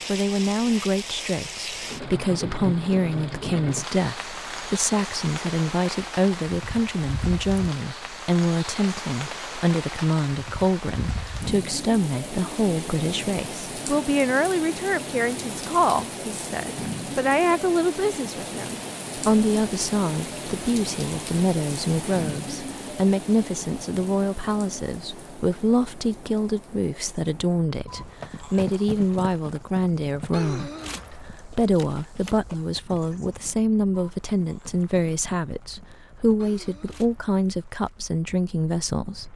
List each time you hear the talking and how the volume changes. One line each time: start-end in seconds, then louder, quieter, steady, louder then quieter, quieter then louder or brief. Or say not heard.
0.1-39.3 steady.